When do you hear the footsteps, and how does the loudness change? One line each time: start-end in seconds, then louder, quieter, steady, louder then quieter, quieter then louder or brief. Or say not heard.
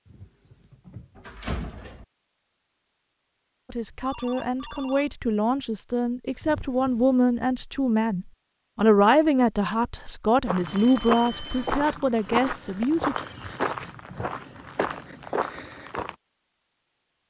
10.4-16.1 quieter then louder.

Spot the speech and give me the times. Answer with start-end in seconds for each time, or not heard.
3.6-13.2.